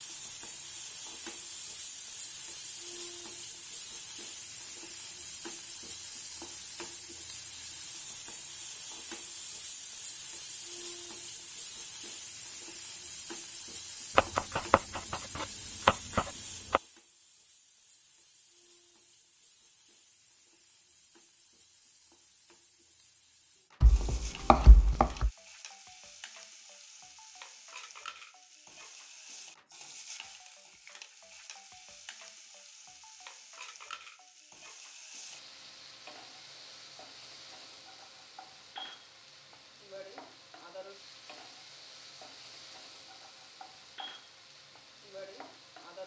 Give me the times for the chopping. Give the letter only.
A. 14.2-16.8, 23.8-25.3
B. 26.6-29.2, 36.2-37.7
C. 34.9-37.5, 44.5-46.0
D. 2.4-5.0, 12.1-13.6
A.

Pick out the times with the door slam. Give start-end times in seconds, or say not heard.
not heard.